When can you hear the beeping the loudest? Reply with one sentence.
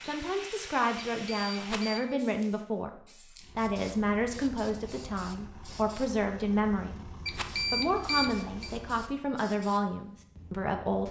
The volume of the beeping peaks at 8 seconds.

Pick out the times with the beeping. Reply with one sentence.
The beeping can be heard from 1.1 to 2.2 s and from 7.2 to 8.7 s.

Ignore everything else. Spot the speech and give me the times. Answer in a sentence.
You can hear the speech from 0.0 to 2.9 s, from 3.5 to 7.0 s and from 7.7 to 11.0 s.